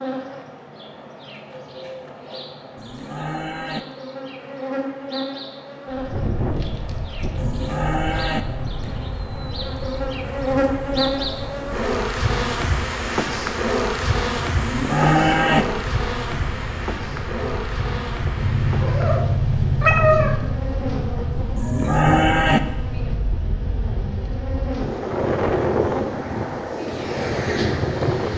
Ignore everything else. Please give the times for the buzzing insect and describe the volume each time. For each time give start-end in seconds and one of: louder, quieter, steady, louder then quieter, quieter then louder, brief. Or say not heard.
0.0-28.3 louder then quieter.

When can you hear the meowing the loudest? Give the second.
20 s.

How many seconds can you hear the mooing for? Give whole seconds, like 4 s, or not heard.
4 s.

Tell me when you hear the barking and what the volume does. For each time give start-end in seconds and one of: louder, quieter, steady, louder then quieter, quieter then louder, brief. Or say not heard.
not heard.